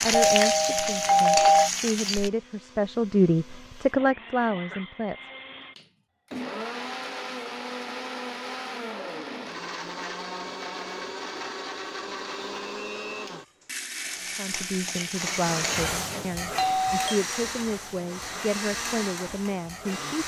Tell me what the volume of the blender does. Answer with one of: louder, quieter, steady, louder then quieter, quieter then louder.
louder.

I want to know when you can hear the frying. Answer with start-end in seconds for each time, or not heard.
0.0-2.3, 14.0-20.2.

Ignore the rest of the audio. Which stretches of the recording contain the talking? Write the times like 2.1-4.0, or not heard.
0.0-5.3, 14.3-20.2.